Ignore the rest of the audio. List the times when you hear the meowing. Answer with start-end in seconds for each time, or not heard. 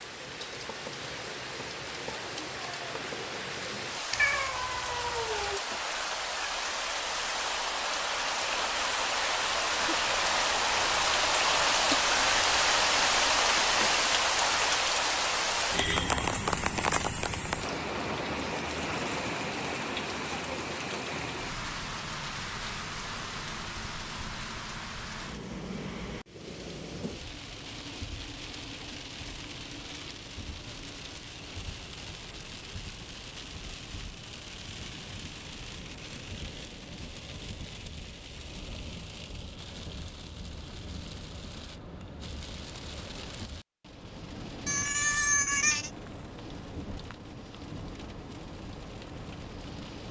4.1-5.6, 44.6-45.9.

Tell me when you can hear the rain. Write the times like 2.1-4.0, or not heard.
0.0-50.0.